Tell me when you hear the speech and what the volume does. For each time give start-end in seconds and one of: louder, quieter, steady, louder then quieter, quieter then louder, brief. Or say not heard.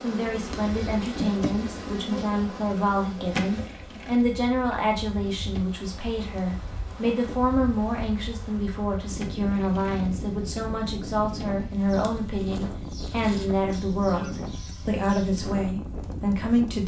0.0-16.8 steady.